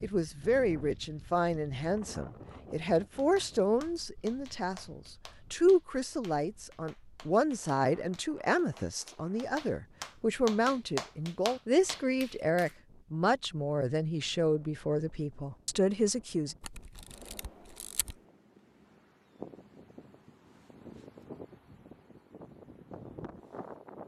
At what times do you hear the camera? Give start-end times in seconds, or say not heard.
16.6-18.1.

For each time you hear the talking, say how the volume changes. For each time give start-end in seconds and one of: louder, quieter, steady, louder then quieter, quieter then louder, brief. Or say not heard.
0.0-16.6 steady.